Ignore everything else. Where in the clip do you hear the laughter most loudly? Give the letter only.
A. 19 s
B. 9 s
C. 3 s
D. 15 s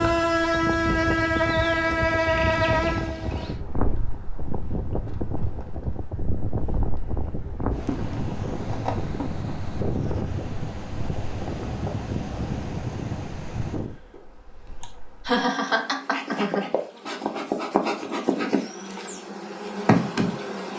D.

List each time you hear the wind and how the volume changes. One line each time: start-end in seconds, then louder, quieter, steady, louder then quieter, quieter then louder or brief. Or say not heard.
0.0-14.0 steady.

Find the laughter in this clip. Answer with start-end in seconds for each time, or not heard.
14.8-16.7.